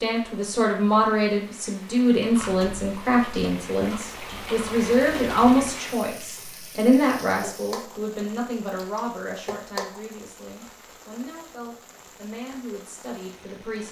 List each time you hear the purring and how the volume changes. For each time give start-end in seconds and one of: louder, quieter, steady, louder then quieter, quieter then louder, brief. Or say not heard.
not heard.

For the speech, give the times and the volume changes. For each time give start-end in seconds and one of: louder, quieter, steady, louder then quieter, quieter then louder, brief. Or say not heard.
0.0-13.8 quieter.